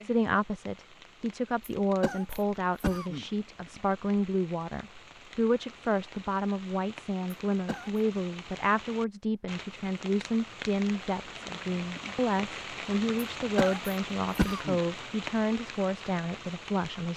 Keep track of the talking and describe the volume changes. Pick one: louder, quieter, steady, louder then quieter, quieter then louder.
steady.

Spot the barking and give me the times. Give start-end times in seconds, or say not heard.
not heard.